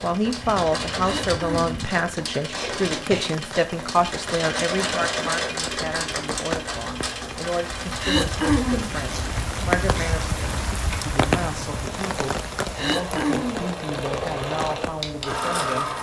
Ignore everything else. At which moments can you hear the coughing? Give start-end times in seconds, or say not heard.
1.0-1.7, 8.0-8.9, 12.8-13.7.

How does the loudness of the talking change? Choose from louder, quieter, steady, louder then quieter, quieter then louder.
quieter.